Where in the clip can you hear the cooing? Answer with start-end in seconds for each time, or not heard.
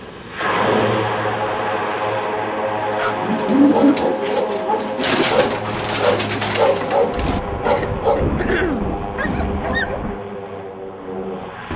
3.1-8.0.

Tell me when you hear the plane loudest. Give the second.
1 s.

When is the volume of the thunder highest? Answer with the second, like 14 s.
8 s.